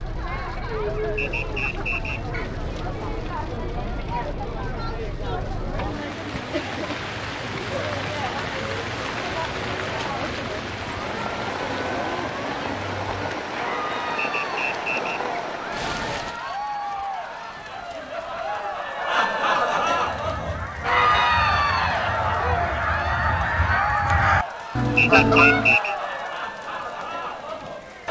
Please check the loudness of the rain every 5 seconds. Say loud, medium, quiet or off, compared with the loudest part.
medium, loud, loud, medium, quiet, quiet.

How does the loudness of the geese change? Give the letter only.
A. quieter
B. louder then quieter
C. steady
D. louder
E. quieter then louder
D.